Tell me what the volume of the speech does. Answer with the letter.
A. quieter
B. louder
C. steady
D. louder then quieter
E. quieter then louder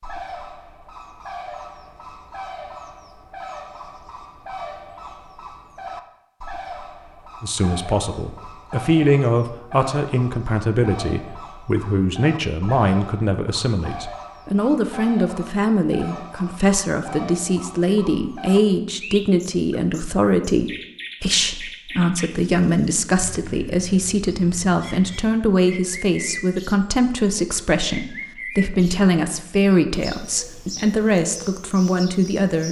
C.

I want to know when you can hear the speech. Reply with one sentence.
The speech can be heard from 7.4 to 32.6 s.